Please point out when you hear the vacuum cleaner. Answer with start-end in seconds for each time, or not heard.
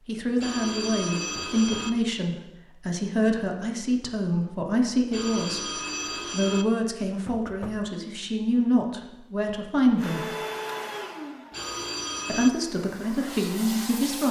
9.9-14.2.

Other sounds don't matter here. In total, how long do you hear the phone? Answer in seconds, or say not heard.
4 s.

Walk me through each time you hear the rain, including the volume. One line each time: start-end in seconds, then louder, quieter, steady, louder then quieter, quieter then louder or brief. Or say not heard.
not heard.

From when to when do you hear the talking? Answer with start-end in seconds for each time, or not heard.
0.1-5.7, 6.3-10.3, 12.2-14.2.